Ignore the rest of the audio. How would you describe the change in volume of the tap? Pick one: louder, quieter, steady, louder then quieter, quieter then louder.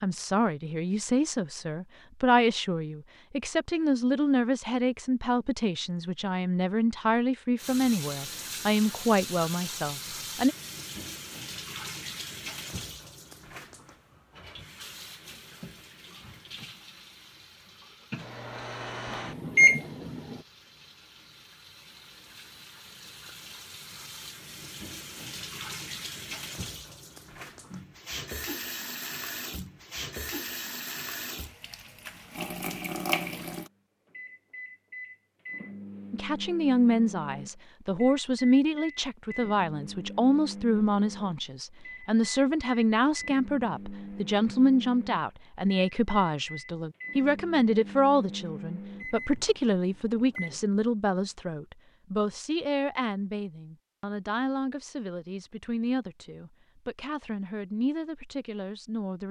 quieter then louder.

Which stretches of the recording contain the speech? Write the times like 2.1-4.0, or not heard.
0.0-10.6, 36.1-59.2.